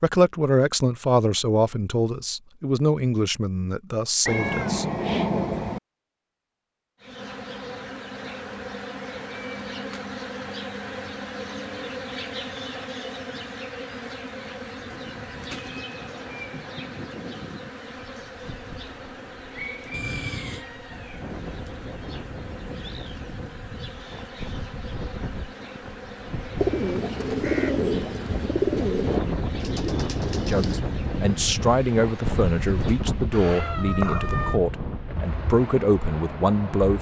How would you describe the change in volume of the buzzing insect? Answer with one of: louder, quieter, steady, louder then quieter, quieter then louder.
quieter.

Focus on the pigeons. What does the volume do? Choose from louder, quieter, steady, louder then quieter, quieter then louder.
quieter.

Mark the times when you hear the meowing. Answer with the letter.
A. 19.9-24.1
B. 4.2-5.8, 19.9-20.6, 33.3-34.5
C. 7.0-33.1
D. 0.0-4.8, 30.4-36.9
B.